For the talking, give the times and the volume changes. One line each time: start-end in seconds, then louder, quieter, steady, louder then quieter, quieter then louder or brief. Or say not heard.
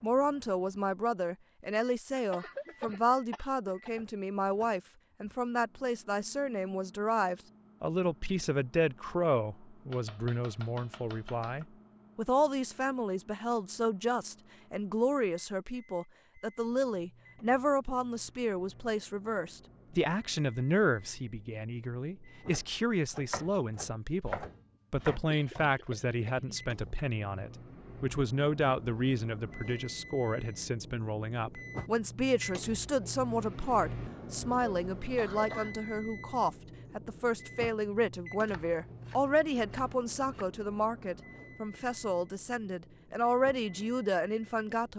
0.0-44.9 steady.